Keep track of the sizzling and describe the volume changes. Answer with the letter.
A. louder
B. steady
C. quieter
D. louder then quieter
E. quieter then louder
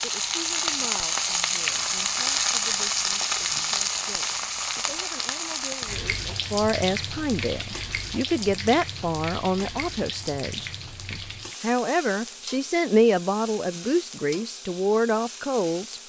C.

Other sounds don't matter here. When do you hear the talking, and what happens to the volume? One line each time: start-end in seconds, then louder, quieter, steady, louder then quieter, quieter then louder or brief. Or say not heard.
0.0-16.0 louder.